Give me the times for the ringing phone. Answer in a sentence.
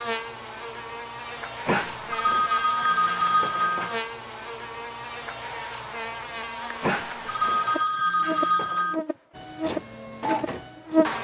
The ringing phone can be heard from 1.6 to 4.0 s and from 6.8 to 9.0 s.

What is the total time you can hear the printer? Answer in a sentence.
The printer can be heard for 2 seconds in total.